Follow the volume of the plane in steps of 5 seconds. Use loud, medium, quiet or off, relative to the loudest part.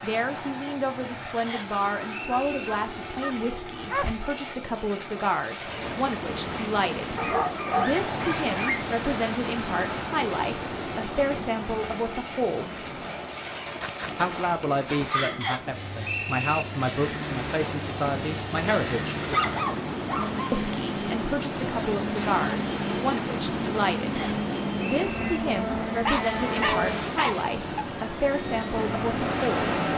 medium, medium, medium, medium, loud, loud.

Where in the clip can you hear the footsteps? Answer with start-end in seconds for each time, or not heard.
not heard.